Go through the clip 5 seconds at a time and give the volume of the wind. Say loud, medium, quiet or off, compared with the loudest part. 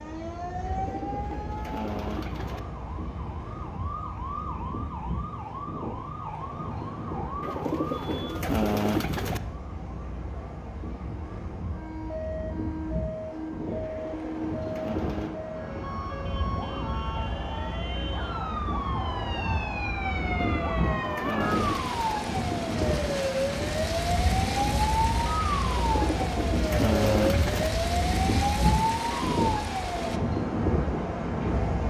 quiet, medium, medium, medium, loud, loud, loud.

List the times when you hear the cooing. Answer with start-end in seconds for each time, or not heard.
0.7-2.6, 7.4-9.4, 13.8-15.3, 20.2-22.1, 25.7-27.7.